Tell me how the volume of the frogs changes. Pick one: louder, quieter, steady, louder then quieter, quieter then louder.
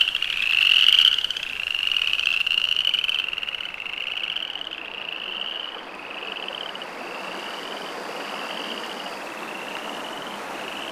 quieter.